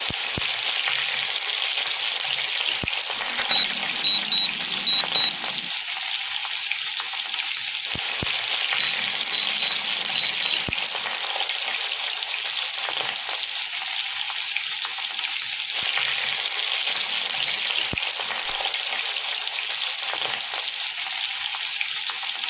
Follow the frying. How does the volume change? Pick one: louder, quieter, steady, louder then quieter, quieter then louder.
steady.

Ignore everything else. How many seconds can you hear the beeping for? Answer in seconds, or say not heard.
5 s.